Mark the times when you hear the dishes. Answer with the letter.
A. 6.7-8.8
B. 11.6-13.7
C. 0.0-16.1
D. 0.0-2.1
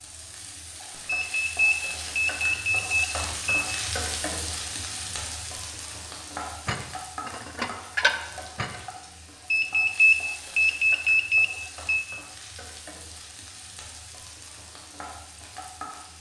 A.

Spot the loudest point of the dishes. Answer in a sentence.
The volume of the dishes peaks at 8 seconds.